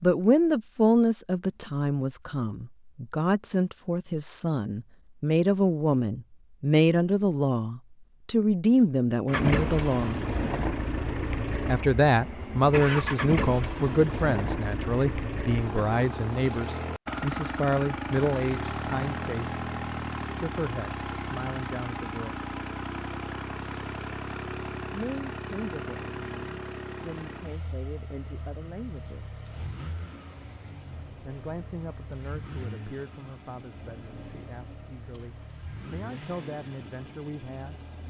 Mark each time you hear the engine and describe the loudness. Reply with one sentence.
The engine can be heard from 9.2 to 38.0 s, getting quieter.